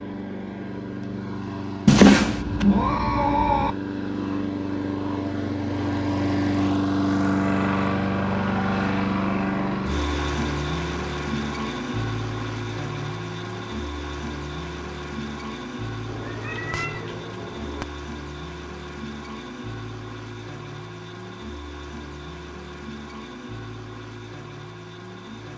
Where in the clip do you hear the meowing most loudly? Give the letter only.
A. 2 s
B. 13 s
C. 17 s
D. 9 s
A.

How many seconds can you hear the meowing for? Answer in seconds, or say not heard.
4 s.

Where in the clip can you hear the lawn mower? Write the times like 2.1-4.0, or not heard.
0.0-25.5.